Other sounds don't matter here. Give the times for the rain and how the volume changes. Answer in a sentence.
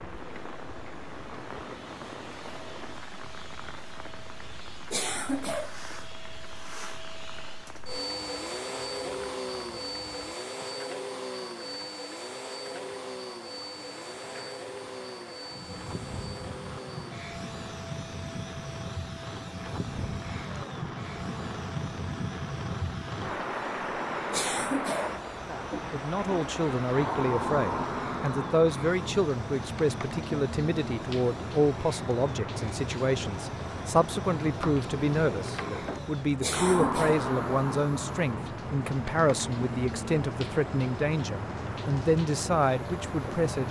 You can hear the rain from 0.0 to 43.6 s, getting louder.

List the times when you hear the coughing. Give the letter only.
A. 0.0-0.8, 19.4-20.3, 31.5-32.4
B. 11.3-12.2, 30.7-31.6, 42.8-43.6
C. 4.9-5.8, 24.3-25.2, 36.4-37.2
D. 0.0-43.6
C.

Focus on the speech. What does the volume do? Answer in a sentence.
The loudness of the speech stays about the same.